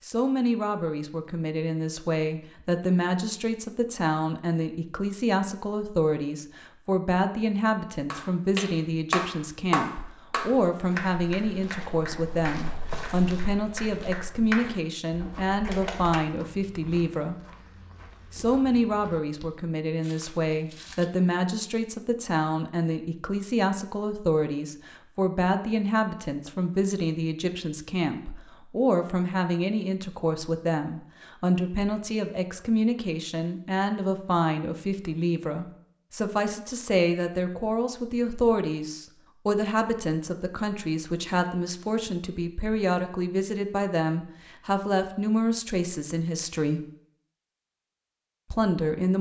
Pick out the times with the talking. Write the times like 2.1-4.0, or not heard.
0.0-17.4, 18.3-46.9, 48.5-49.1.